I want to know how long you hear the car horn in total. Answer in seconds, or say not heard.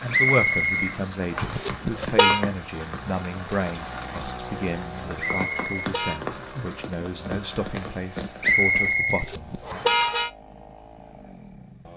3 s.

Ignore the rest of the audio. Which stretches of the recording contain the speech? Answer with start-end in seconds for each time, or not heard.
0.0-9.8.